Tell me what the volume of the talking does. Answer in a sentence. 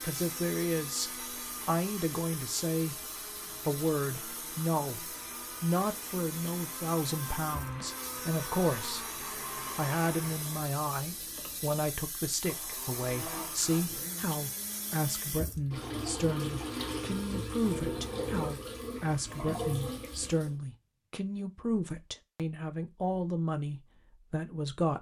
The volume of the talking stays about the same.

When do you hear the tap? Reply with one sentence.
You can hear the tap from 0.0 to 20.6 s.